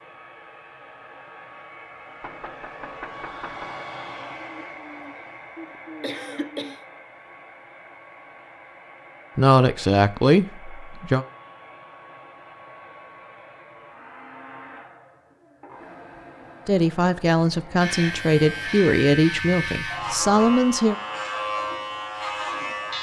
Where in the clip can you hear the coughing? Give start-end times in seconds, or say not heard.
4.3-6.8.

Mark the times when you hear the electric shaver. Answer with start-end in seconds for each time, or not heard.
17.8-22.9.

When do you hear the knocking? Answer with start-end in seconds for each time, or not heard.
2.2-3.8.